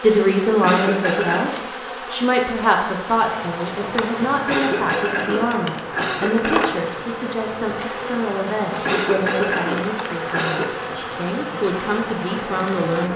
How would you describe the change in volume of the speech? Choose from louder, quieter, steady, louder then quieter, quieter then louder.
quieter.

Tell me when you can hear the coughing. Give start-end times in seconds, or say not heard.
0.6-1.6, 4.5-6.8, 8.8-10.8.